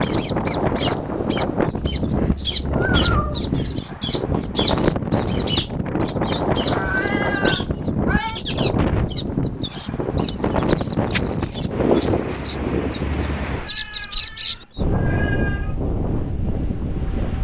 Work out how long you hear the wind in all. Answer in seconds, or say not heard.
17 s.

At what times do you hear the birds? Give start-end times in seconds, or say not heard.
0.0-14.8.